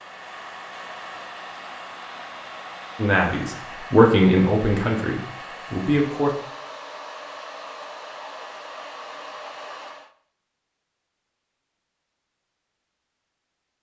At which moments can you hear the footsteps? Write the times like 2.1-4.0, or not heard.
not heard.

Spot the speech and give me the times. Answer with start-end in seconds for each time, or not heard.
3.0-6.3.